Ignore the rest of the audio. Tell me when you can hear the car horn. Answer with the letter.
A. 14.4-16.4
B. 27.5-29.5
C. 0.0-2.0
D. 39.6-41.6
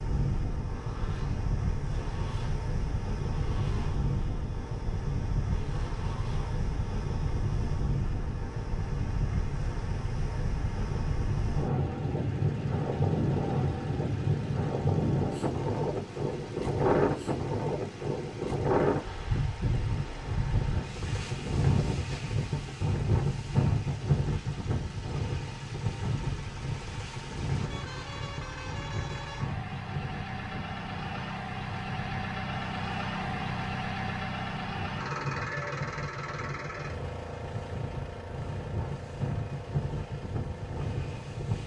B.